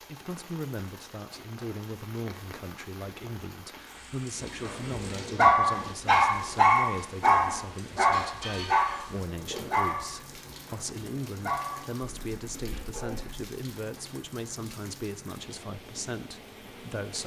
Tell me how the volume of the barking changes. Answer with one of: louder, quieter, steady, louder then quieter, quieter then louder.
quieter.